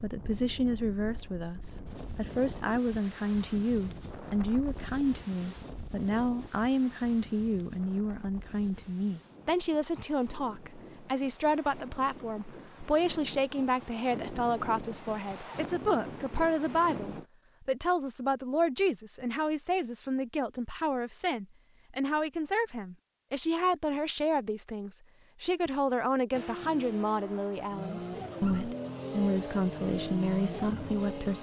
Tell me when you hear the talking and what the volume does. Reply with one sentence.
You can hear the talking from 0.0 to 31.3 s, at a steady volume.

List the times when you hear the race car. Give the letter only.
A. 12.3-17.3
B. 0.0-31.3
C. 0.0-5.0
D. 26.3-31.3
D.